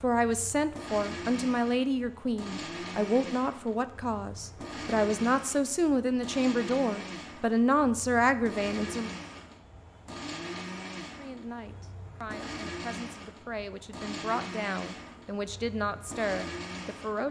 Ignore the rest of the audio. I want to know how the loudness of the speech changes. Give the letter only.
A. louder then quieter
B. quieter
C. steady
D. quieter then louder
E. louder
D.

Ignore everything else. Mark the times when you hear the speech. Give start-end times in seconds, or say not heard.
0.0-9.1, 11.2-17.2.